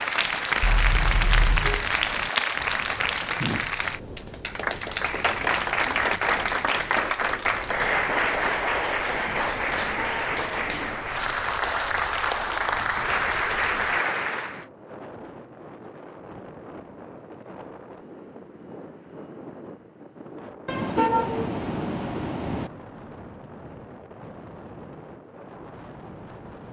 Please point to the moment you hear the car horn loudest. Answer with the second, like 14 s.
21 s.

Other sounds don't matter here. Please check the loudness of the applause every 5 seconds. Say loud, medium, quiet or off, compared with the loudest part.
loud, loud, loud, off, off, off.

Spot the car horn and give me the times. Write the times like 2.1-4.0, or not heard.
0.6-1.9, 9.8-10.9, 20.6-22.7.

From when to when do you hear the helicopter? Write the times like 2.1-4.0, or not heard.
not heard.